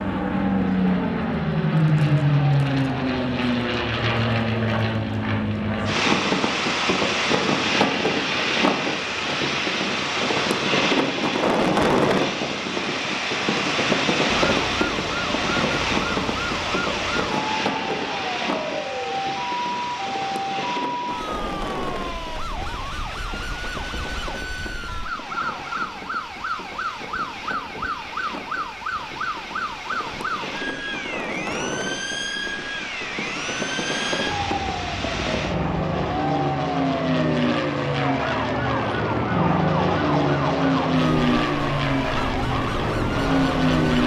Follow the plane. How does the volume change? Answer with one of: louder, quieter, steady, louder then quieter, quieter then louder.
quieter then louder.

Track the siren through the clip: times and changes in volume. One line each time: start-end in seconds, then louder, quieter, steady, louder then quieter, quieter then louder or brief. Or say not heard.
14.4-44.0 steady.